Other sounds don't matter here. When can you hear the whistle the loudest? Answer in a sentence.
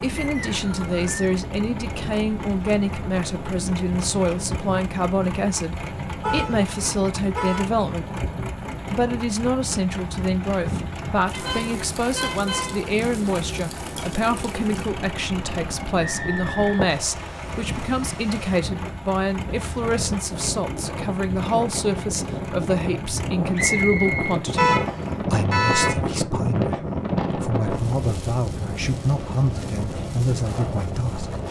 The loudest moment of the whistle is at 24 seconds.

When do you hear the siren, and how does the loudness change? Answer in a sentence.
The siren can't be heard in this clip.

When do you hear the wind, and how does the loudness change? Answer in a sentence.
The wind can be heard from 0.0 to 31.4 s, getting louder.